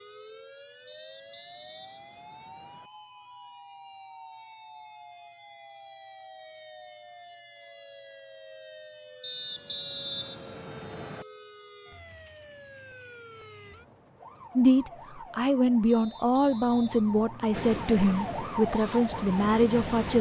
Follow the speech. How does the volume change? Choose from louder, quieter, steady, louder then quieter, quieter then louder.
steady.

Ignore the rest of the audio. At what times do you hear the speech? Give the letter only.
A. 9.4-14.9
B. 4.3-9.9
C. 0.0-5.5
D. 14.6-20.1
D.